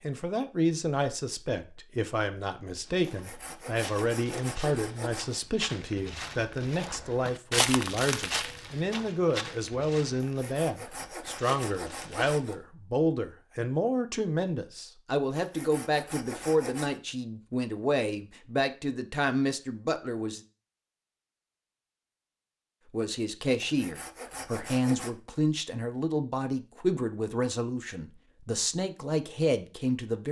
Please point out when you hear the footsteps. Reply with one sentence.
You can hear the footsteps from 2.8 to 12.5 s.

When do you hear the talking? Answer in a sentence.
You can hear the talking from 0.0 to 20.4 s and from 22.9 to 30.2 s.